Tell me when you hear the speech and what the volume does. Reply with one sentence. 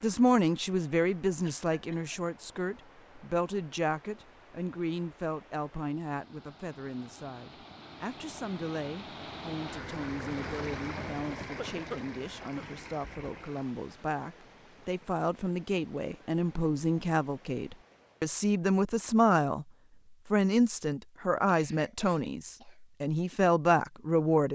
You can hear the speech from 0.0 to 24.5 s, getting quieter then louder.